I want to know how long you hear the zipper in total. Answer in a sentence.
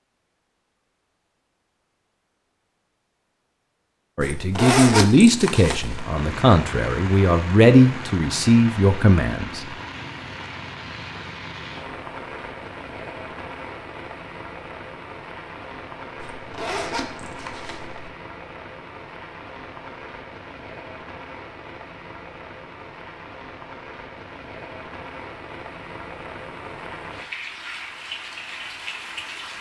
You can hear the zipper for 4 seconds altogether.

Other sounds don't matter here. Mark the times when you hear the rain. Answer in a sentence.
The rain can be heard from 5.8 to 29.5 s.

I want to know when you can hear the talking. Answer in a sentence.
The talking can be heard from 4.2 to 9.6 s.